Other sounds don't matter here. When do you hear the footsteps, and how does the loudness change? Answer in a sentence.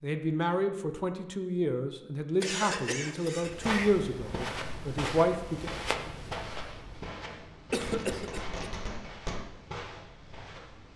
The footsteps can be heard from 3.4 to 10.9 s, getting quieter.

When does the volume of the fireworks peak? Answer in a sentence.
The volume of the fireworks peaks at 9 seconds.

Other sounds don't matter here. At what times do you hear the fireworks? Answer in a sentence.
The fireworks can be heard from 7.2 to 9.4 s.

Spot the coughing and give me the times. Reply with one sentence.
You can hear the coughing from 2.4 to 3.9 s and from 7.7 to 8.6 s.